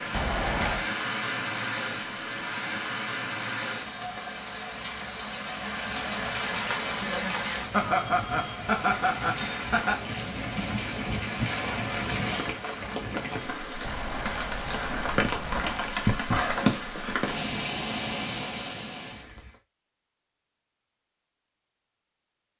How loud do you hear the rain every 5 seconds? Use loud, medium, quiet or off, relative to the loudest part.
loud, loud, loud, loud, off.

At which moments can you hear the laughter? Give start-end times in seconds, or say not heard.
7.7-10.0.